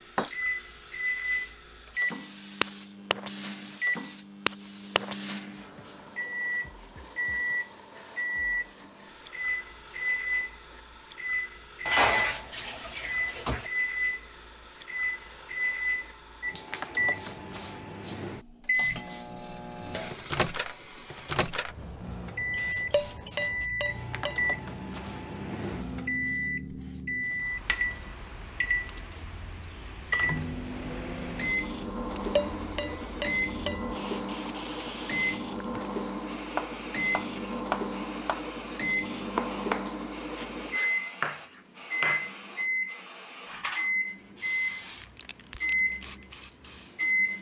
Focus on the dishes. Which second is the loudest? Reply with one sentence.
The loudest moment of the dishes is at 12 seconds.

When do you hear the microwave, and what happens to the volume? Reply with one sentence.
The microwave can be heard from 0.0 to 47.3 s, at a steady volume.